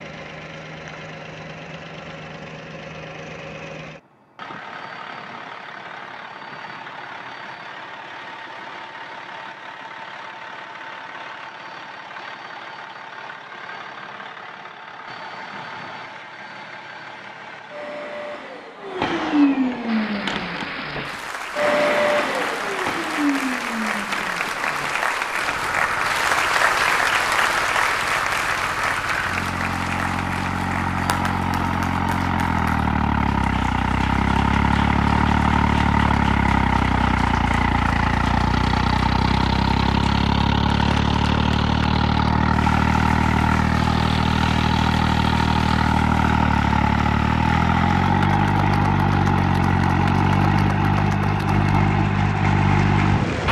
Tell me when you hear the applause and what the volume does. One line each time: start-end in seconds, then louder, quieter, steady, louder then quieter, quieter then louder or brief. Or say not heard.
19.9-53.4 quieter.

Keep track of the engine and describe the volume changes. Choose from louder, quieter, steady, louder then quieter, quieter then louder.
louder.